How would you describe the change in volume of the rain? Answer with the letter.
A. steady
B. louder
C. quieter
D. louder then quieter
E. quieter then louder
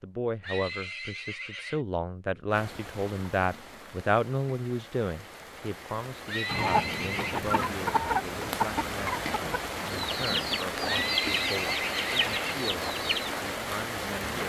B.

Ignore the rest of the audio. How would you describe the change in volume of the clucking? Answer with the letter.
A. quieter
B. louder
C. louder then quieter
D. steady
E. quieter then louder
D.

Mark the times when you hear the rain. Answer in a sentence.
You can hear the rain from 2.5 to 14.4 s.